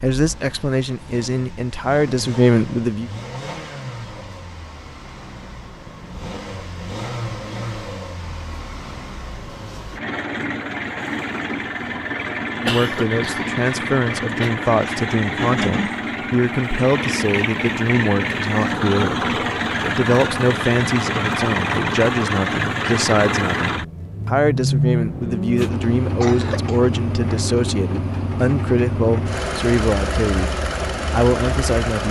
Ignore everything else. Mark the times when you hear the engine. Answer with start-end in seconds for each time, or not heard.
0.0-32.0.